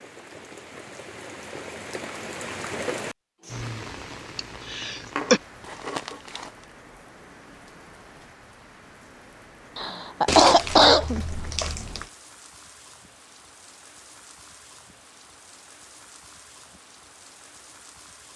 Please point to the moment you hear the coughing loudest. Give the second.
11 s.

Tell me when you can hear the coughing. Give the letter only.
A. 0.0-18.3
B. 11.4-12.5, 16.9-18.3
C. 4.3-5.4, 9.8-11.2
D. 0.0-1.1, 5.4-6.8
C.